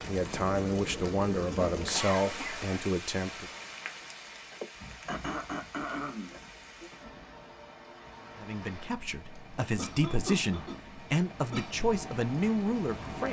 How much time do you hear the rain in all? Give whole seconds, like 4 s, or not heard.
13 s.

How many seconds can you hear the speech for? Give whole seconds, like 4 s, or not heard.
8 s.